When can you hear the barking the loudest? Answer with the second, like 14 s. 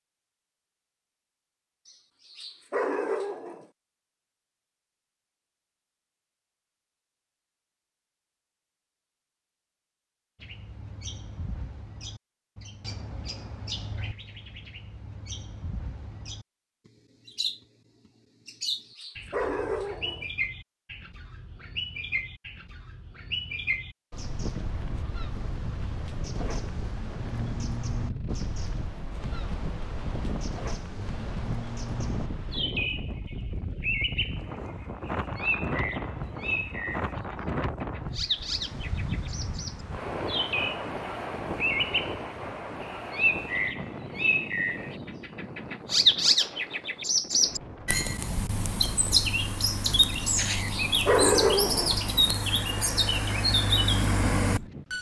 51 s.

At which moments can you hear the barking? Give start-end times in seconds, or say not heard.
1.9-3.6, 18.4-20.2, 50.2-52.0.